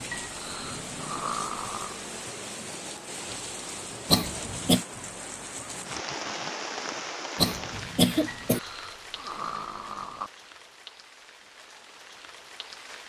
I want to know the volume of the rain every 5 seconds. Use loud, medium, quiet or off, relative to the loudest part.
loud, loud, medium.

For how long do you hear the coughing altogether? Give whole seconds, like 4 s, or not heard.
2 s.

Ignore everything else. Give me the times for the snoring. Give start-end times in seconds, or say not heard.
0.1-2.0, 8.2-10.3.